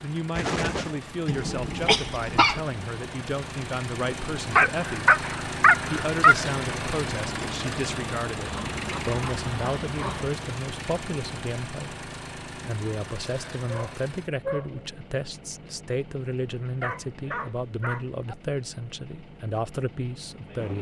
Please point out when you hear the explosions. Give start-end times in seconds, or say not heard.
0.3-1.0.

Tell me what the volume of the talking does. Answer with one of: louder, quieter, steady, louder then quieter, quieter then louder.
steady.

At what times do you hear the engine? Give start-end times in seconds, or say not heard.
0.0-20.7.